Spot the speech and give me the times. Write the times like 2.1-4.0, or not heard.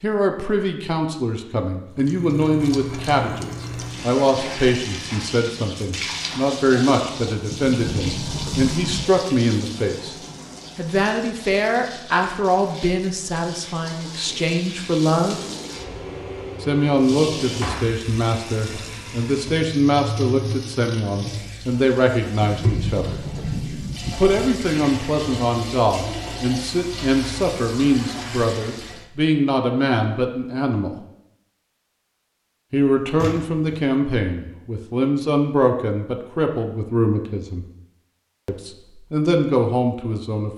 0.0-10.2, 10.8-15.4, 16.6-23.1, 24.1-30.9, 32.7-37.6, 38.5-40.5.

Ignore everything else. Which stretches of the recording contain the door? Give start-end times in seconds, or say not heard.
7.5-9.2, 22.4-24.6, 32.8-33.9.